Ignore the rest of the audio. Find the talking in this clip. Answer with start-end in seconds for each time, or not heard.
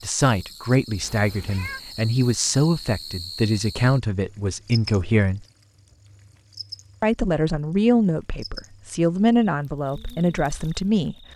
0.0-5.5, 7.0-11.2.